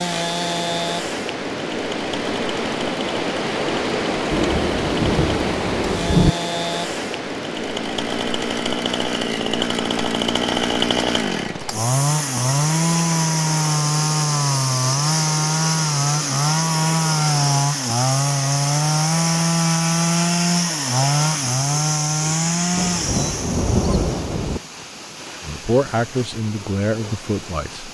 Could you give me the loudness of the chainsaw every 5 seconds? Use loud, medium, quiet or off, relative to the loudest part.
medium, medium, loud, loud, loud, off.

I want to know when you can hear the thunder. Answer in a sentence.
The thunder can be heard from 4.3 to 6.3 s and from 22.8 to 24.6 s.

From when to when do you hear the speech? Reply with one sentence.
The speech can be heard from 25.4 to 27.8 s.